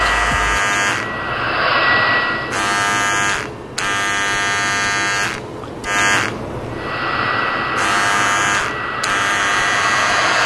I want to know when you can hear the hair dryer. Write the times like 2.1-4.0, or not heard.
0.0-2.6, 6.7-10.4.